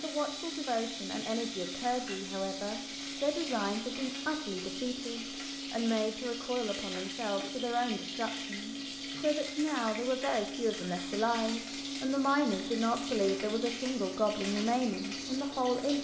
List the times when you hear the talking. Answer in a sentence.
The talking can be heard from 0.0 to 15.9 s.